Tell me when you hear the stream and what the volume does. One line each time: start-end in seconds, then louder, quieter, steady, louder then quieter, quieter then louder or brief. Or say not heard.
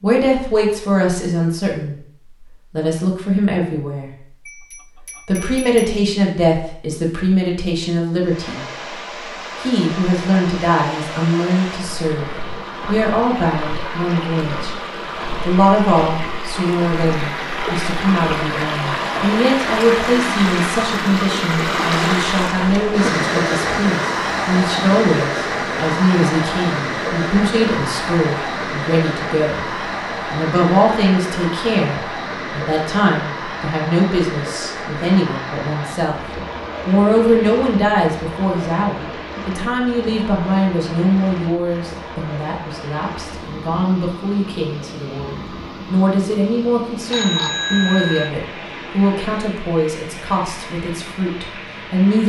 8.2-52.2 louder then quieter.